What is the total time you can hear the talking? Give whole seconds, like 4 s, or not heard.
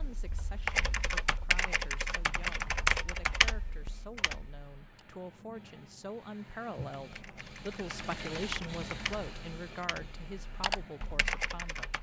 12 s.